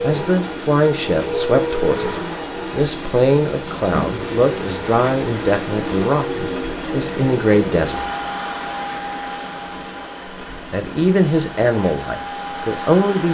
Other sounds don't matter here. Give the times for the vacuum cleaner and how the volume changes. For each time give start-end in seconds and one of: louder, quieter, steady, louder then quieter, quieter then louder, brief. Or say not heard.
0.0-13.3 quieter.